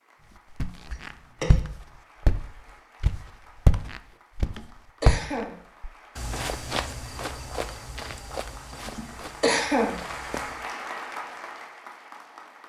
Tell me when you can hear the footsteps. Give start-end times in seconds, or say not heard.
0.6-10.7.